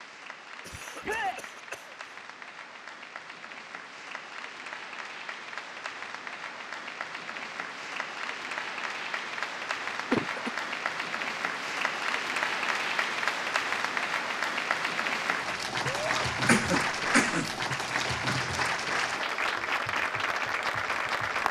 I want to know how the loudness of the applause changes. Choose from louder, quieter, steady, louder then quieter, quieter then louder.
louder.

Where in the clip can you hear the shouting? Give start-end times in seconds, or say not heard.
1.0-1.4, 15.8-16.2.